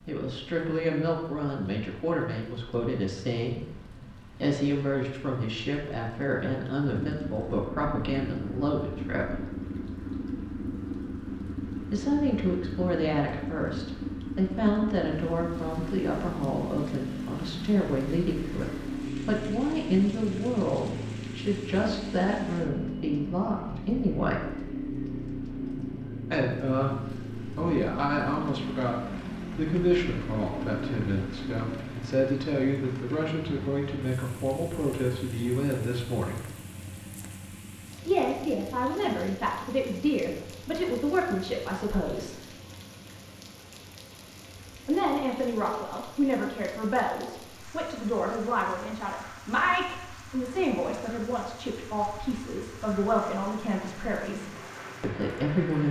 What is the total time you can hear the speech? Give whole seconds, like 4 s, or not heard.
47 s.